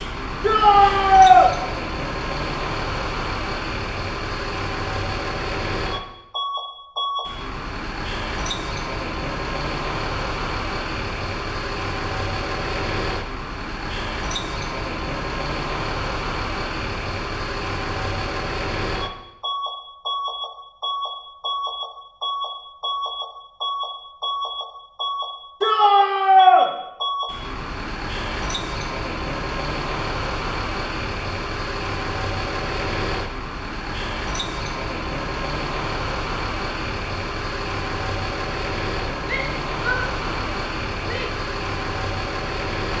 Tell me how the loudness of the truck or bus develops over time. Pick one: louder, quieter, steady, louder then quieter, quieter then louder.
steady.